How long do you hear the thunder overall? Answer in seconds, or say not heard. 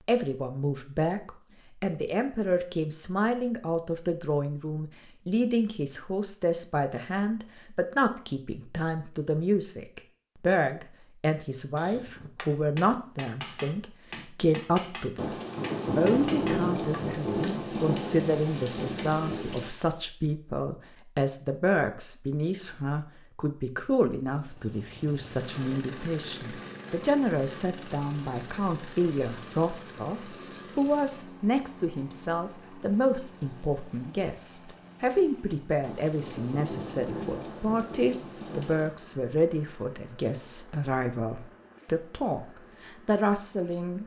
8 s.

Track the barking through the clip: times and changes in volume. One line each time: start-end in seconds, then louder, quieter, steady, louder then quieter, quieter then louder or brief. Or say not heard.
not heard.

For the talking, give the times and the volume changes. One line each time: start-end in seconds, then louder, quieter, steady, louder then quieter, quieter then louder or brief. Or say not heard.
0.1-15.3 steady
15.9-44.0 steady.